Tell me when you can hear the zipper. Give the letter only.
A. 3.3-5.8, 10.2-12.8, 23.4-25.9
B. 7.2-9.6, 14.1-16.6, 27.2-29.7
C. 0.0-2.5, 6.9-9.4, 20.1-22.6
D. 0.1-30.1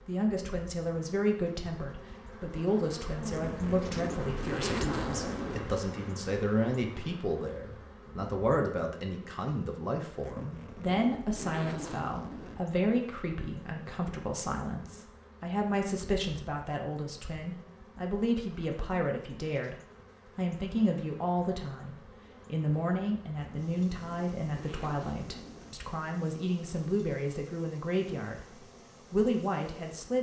A.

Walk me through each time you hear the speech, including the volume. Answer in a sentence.
You can hear the speech from 0.1 to 30.1 s, at a steady volume.